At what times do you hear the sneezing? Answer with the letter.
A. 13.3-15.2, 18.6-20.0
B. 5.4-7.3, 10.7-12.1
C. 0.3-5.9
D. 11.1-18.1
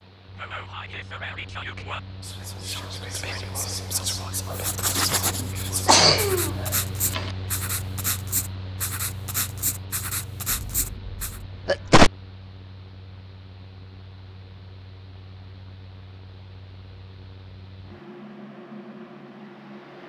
B.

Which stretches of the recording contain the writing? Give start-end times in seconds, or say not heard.
4.5-11.4.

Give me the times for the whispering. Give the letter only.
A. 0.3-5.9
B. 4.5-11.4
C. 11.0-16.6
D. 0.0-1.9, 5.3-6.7
A.